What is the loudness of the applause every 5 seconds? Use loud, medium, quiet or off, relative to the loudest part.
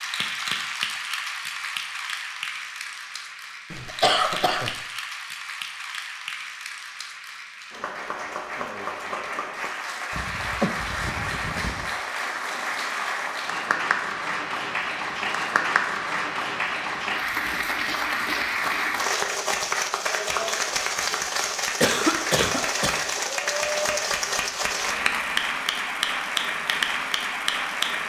medium, medium, loud, loud, loud, loud.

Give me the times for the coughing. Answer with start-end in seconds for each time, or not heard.
3.7-4.8, 10.1-11.9, 21.8-23.1.